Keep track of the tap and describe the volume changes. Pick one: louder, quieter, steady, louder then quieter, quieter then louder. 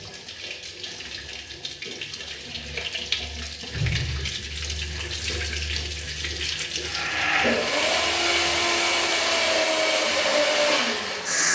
louder then quieter.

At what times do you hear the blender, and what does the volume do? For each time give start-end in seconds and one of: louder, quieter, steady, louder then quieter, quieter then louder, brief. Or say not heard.
6.8-11.5 steady.